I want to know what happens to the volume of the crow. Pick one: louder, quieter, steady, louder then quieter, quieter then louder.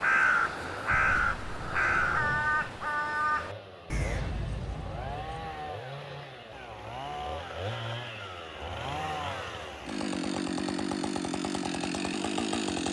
quieter.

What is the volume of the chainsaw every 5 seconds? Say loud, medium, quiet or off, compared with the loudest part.
quiet, medium, loud.